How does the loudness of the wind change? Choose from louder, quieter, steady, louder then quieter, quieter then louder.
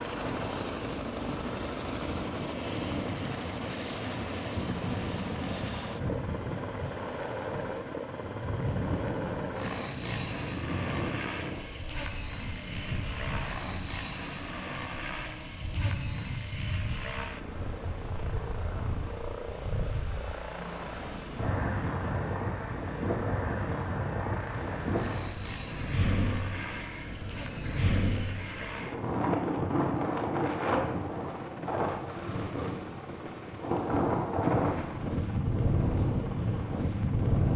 louder.